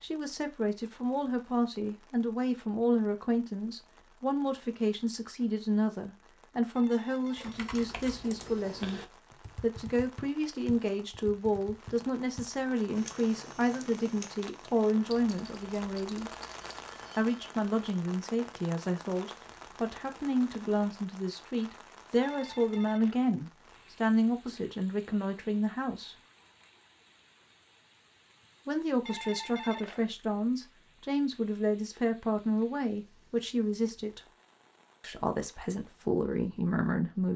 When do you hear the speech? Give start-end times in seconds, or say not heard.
0.0-16.4, 17.1-26.1, 28.6-34.2, 35.0-37.3.